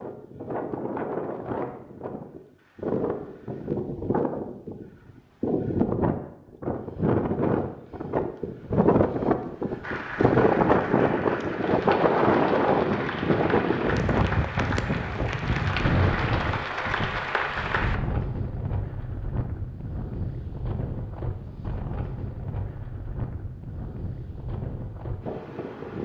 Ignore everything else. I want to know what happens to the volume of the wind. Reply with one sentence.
The loudness of the wind goes up, then down.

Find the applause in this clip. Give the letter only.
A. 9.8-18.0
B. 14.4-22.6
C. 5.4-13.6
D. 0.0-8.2
A.